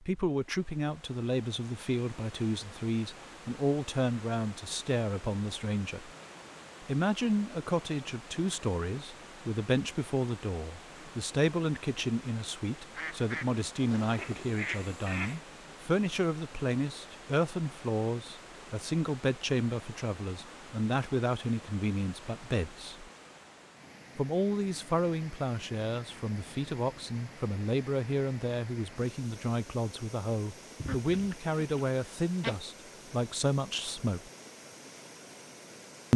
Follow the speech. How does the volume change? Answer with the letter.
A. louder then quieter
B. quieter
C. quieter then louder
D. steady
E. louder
D.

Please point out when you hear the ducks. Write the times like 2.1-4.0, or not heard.
12.9-15.4, 30.8-32.8.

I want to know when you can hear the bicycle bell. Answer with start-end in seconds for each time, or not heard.
not heard.